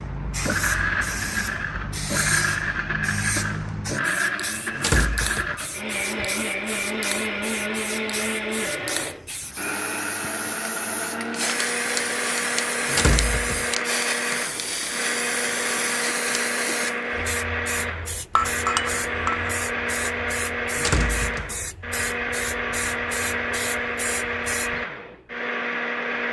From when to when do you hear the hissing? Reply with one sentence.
The hissing can be heard from 0.0 to 24.9 s.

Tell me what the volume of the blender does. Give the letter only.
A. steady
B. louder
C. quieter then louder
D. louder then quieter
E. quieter
A.